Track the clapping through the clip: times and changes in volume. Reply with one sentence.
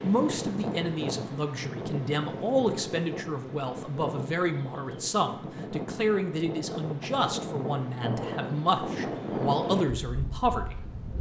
The clapping can't be heard in this clip.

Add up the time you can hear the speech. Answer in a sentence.
The speech can be heard for 11 seconds in total.